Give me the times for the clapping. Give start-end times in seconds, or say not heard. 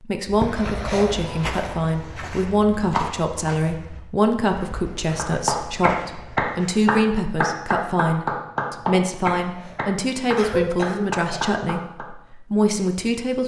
5.2-12.1.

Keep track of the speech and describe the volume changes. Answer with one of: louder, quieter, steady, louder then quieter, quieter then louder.
steady.